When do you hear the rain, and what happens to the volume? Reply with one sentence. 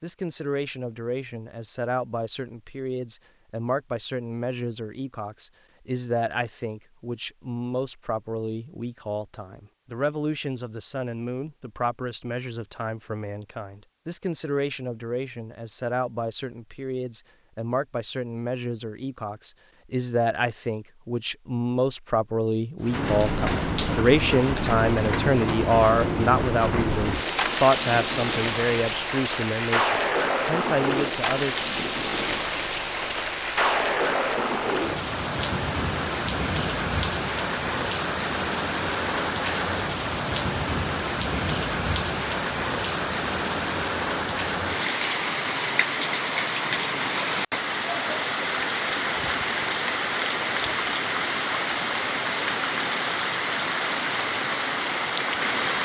You can hear the rain from 22.8 to 55.8 s, at a steady volume.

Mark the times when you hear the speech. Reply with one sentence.
You can hear the speech from 0.0 to 31.6 s.